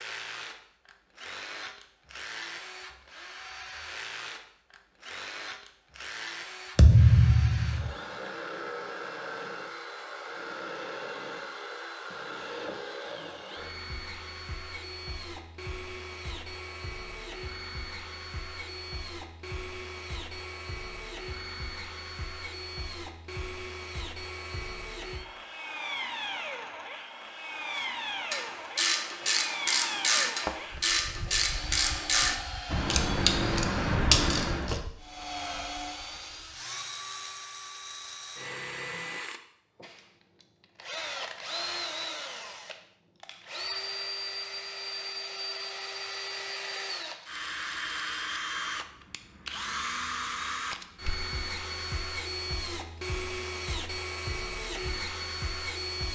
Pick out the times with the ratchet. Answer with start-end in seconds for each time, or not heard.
27.8-34.8.